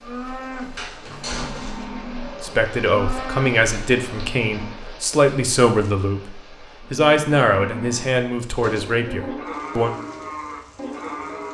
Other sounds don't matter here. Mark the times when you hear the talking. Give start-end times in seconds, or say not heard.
2.4-9.9.